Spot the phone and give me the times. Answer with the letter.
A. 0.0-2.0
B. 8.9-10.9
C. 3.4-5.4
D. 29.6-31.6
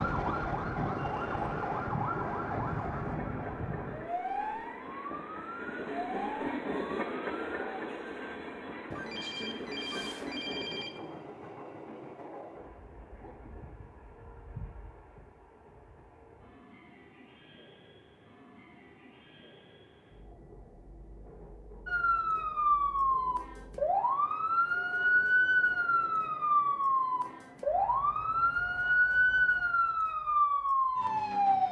B.